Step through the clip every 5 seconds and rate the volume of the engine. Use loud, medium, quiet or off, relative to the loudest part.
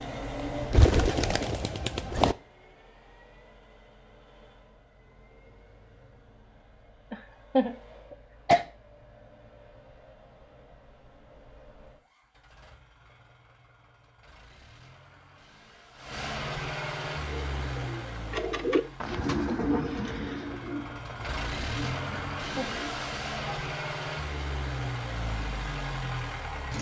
medium, quiet, quiet, loud, loud, loud.